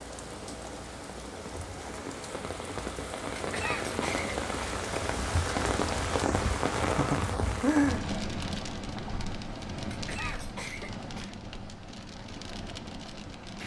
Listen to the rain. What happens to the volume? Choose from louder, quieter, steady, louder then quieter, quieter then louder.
louder then quieter.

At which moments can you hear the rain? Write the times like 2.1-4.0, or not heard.
0.0-13.6.